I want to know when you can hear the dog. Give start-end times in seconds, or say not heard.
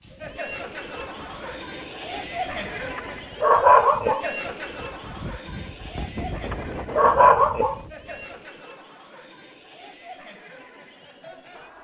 3.0-4.2, 6.5-7.8.